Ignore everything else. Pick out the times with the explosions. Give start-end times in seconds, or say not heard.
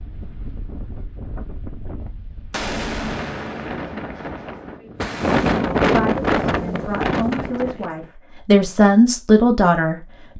2.5-5.6.